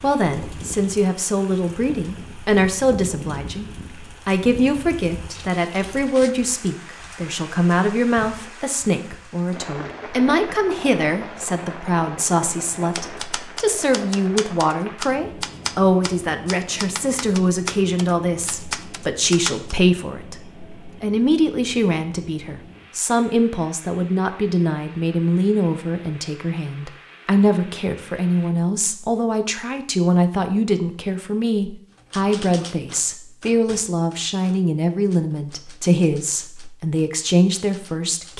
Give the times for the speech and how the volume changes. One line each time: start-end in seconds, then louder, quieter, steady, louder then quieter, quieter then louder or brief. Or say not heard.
0.0-38.3 steady.